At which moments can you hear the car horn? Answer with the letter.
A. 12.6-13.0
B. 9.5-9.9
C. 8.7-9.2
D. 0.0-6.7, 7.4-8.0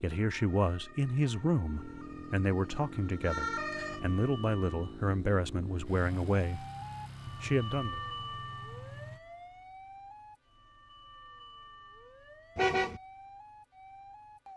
A.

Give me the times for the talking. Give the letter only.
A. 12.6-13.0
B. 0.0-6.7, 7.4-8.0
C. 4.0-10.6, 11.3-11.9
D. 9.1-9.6
B.